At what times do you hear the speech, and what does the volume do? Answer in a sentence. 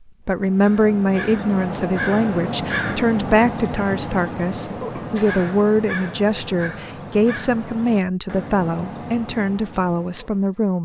You can hear the speech from 0.2 to 10.8 s, at a steady volume.